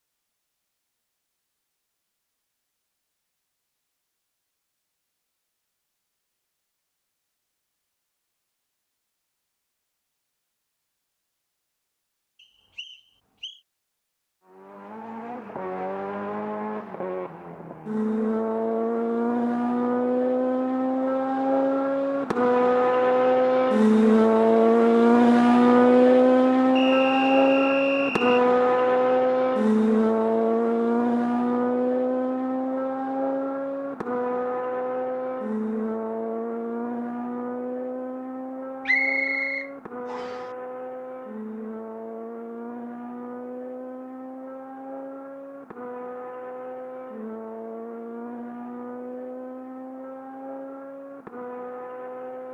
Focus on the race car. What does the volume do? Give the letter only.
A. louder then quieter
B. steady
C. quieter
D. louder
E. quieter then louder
A.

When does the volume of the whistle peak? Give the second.
39 s.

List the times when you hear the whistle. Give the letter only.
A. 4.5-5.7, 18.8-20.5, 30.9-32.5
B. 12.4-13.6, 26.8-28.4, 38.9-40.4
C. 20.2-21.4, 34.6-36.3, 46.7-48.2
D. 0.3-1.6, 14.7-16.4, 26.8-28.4
B.